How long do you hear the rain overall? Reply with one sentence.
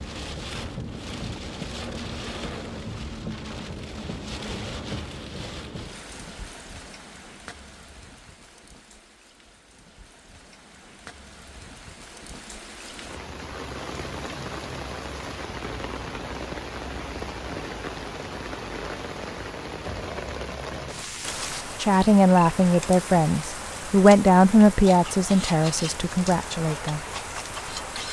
The rain can be heard for 28 seconds in total.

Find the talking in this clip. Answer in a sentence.
You can hear the talking from 21.8 to 27.0 s.